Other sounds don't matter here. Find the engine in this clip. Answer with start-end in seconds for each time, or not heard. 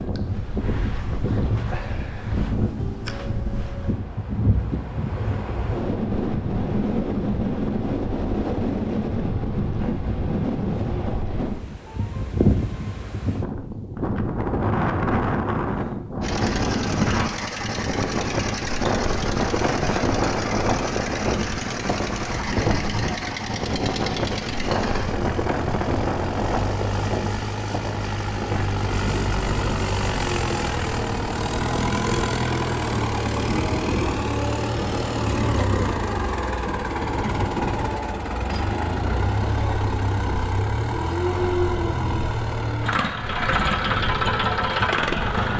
16.2-45.5.